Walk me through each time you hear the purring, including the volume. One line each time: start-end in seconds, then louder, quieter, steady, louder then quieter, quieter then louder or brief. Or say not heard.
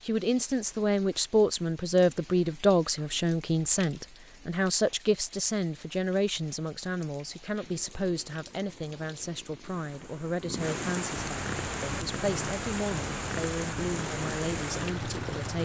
7.6-15.6 louder.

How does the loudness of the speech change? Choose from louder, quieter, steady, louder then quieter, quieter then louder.
quieter.